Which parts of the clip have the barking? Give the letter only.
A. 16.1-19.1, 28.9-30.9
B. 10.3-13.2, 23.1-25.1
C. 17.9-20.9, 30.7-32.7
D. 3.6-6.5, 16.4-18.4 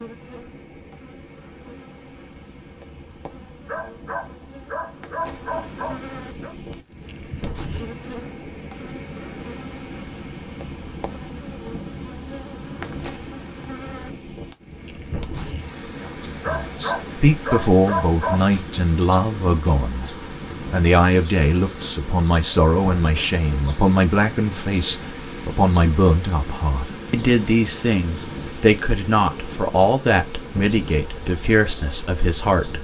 D.